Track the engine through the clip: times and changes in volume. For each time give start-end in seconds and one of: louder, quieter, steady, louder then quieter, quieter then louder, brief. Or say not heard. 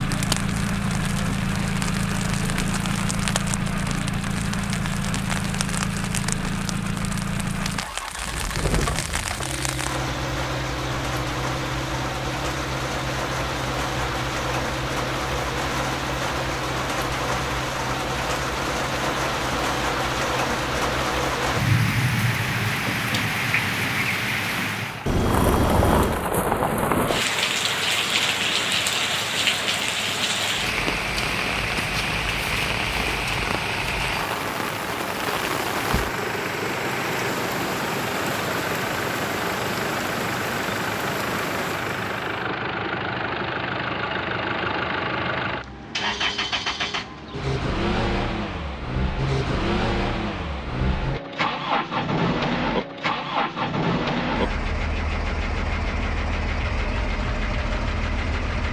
0.0-58.6 quieter then louder.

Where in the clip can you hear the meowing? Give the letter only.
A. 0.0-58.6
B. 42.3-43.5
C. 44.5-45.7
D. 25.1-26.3
D.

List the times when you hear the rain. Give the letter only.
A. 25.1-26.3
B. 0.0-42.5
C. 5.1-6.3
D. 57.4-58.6
B.